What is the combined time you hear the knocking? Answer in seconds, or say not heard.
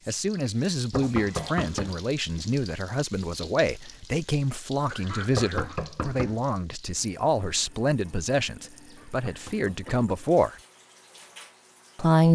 3 s.